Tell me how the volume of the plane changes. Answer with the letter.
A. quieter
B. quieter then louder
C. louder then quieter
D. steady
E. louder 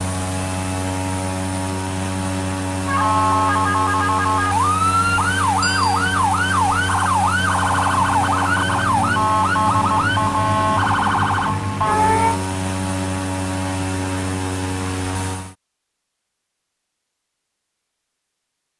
D.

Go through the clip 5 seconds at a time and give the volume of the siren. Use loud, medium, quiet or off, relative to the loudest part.
loud, loud, loud, off.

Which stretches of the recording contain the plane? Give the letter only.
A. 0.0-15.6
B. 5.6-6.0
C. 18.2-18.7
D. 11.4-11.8
A.